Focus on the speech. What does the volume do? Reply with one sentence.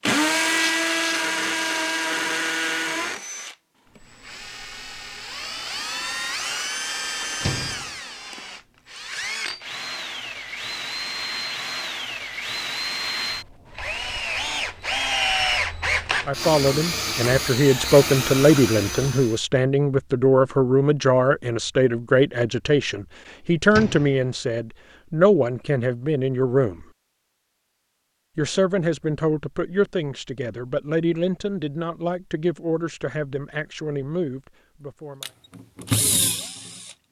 The volume of the speech goes down.